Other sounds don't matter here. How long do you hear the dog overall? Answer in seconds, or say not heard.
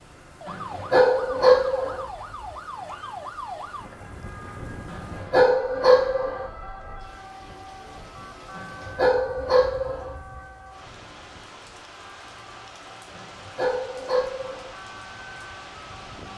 6 s.